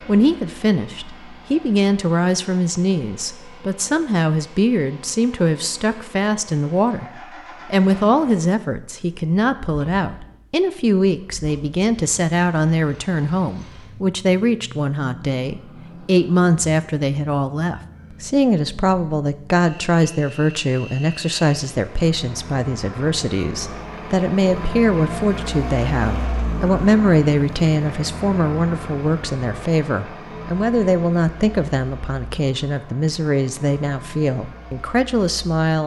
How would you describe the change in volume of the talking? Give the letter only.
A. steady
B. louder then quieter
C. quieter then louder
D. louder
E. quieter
A.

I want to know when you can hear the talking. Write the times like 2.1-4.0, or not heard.
0.1-35.8.